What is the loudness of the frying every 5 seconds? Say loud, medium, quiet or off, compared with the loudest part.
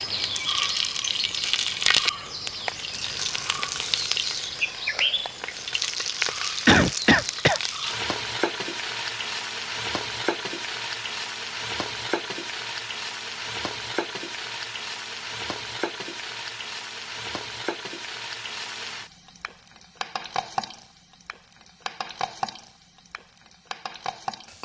loud, loud, medium, medium, medium.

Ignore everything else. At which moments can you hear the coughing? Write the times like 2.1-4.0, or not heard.
6.7-7.6.